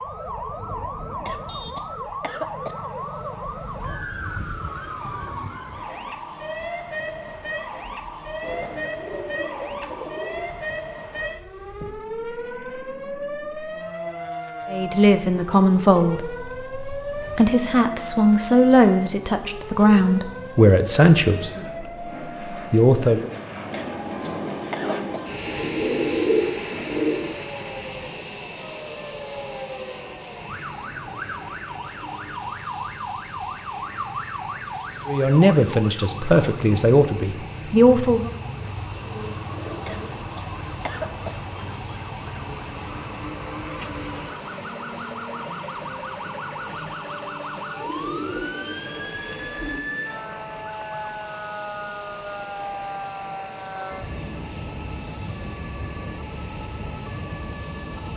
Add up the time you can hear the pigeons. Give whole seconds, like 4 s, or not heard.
8 s.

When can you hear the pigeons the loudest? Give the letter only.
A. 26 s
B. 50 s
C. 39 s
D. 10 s
A.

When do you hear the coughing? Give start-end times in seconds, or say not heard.
1.2-2.8, 23.7-25.2, 39.9-41.4.